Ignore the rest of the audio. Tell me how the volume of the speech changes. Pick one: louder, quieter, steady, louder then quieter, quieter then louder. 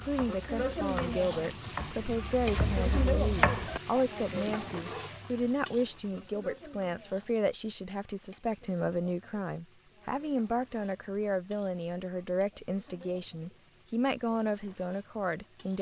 steady.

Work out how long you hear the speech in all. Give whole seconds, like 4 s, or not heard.
16 s.